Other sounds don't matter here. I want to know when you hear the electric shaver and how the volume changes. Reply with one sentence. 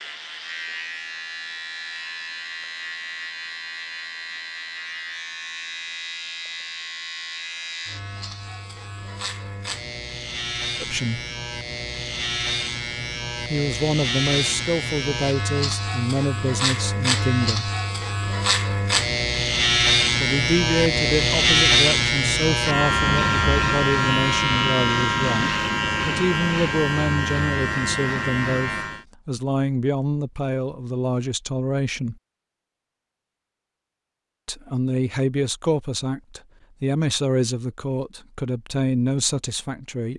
You can hear the electric shaver from 0.0 to 29.1 s, getting louder.